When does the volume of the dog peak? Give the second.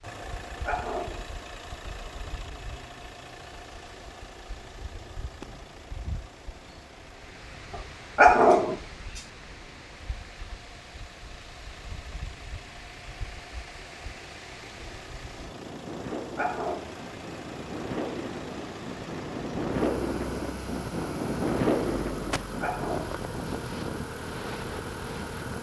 8 s.